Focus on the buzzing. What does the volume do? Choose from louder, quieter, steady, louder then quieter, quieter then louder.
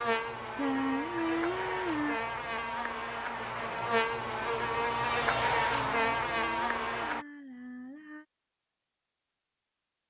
louder.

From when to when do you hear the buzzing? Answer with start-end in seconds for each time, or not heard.
0.0-7.2.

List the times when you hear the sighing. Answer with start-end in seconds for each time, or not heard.
0.6-2.2, 5.7-8.2.